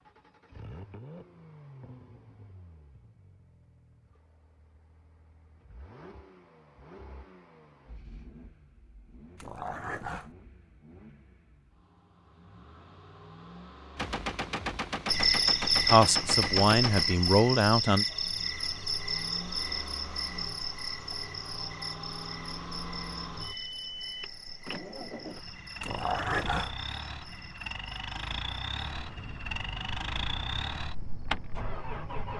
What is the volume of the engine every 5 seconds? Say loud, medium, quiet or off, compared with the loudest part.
quiet, quiet, quiet, medium, medium, loud, loud.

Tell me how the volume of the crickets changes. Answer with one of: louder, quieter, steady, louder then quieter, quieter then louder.
quieter.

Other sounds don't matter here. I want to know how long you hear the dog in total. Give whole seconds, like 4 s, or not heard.
2 s.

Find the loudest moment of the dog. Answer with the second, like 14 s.
26 s.